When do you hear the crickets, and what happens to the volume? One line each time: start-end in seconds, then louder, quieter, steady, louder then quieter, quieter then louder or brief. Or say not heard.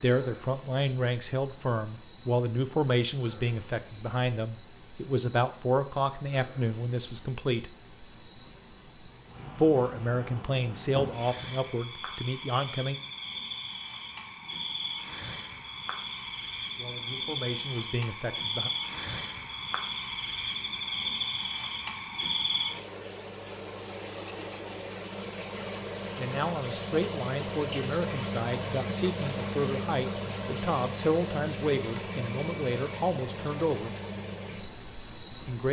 0.0-35.6 louder.